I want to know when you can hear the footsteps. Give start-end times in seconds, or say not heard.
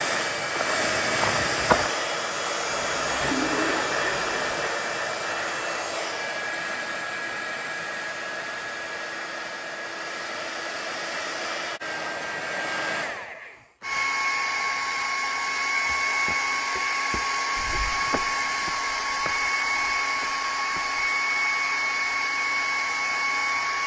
0.0-1.9, 15.8-21.0.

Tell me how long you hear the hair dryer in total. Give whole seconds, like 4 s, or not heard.
24 s.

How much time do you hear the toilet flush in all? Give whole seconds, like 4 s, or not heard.
2 s.